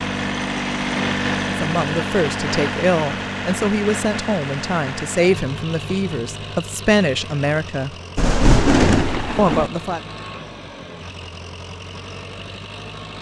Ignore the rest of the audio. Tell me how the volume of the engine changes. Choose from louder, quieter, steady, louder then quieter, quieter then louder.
quieter.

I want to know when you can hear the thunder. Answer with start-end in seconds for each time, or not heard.
8.2-9.7.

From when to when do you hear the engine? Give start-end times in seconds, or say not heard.
0.0-13.1.